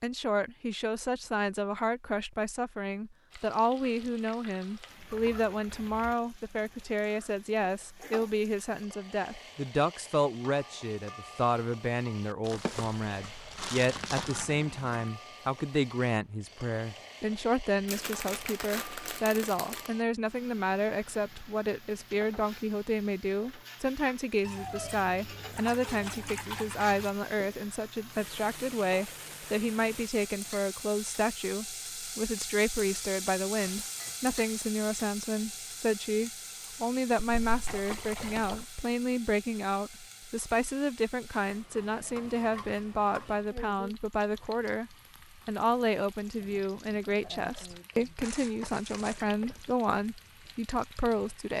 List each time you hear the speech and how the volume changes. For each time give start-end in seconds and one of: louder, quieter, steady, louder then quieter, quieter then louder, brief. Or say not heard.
0.0-51.5 steady.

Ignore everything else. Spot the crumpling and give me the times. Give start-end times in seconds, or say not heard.
12.4-14.6, 17.9-19.9, 48.2-49.2.